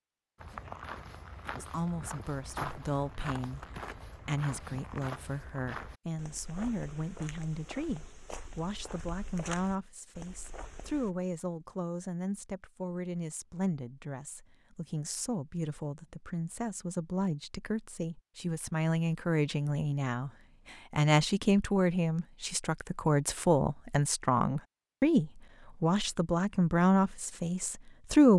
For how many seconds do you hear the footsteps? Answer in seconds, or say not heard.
11 s.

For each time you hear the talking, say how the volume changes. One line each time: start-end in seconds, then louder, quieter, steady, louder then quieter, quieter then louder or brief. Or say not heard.
1.6-28.3 louder.